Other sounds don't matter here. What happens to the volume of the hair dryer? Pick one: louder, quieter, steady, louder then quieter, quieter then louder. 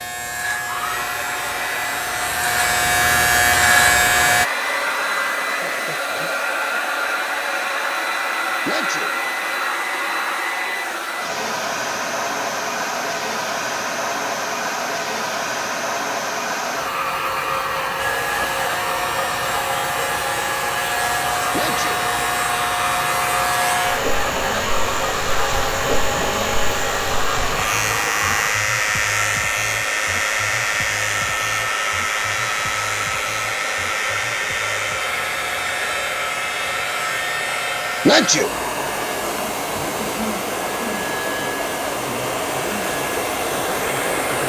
steady.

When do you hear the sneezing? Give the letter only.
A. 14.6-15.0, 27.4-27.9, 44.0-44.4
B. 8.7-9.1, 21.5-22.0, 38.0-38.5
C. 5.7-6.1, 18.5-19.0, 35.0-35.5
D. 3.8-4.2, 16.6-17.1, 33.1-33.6
B.